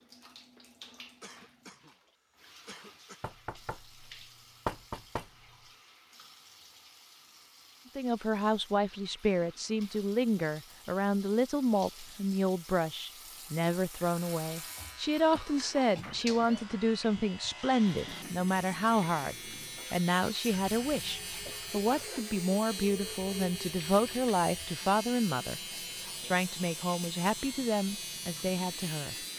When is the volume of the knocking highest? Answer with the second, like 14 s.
5 s.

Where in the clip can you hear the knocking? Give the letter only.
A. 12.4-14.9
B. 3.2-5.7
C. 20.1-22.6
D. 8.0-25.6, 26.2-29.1
B.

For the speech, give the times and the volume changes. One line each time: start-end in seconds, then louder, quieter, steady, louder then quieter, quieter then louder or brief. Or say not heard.
8.0-25.6 steady
26.2-29.1 brief.